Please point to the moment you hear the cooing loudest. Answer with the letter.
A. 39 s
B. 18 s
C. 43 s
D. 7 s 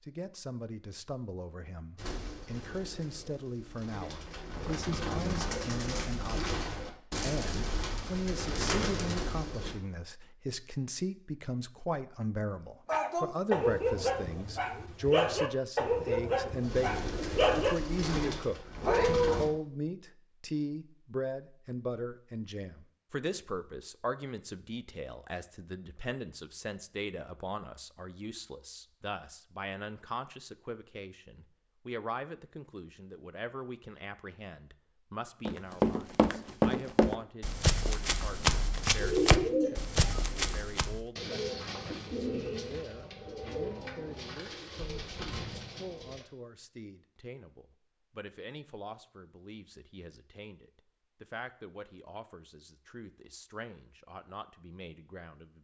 A.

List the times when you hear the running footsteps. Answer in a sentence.
You can hear the running footsteps from 35.5 to 41.0 s.